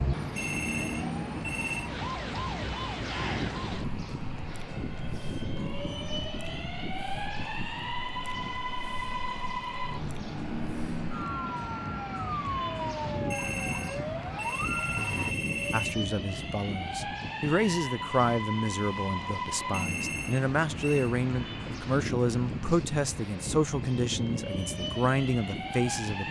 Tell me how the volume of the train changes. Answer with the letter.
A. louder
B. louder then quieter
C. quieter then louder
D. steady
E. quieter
D.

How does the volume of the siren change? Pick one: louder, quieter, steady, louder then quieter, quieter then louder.
quieter then louder.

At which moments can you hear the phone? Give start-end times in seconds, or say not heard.
0.3-1.9, 13.3-15.9, 19.7-21.1.